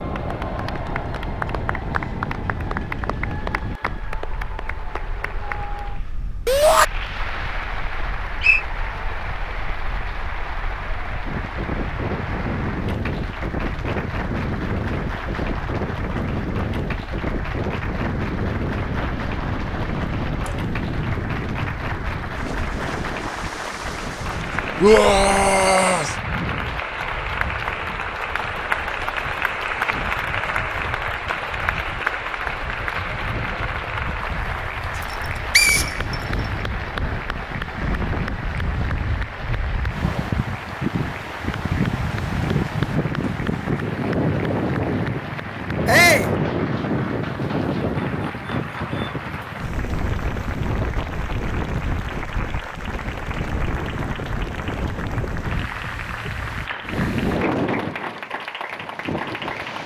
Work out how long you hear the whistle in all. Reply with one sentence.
You can hear the whistle for 2 seconds altogether.